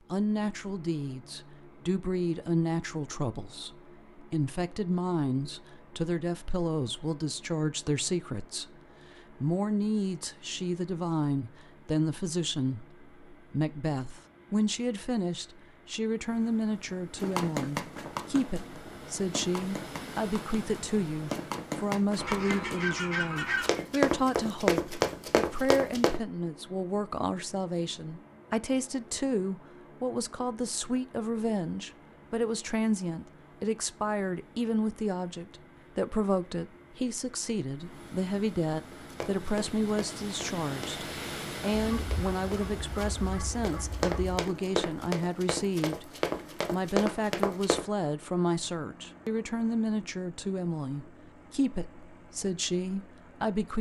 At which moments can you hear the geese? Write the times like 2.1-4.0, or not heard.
22.1-23.9, 41.8-44.4.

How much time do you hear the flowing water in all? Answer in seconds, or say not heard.
not heard.